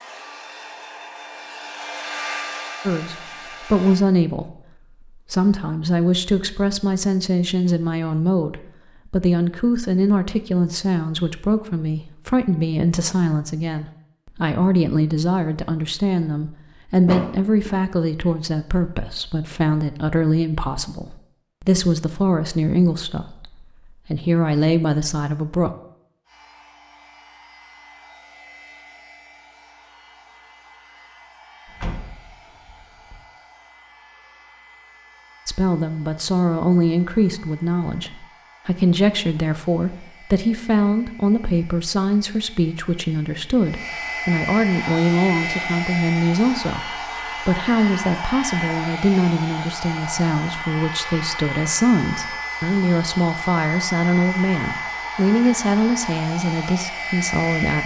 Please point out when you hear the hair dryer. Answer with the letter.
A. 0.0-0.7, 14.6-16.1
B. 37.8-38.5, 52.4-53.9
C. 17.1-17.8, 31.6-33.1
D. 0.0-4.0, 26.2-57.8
D.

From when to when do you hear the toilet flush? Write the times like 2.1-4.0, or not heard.
not heard.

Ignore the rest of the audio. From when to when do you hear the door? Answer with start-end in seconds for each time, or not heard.
17.1-17.8, 31.6-33.1.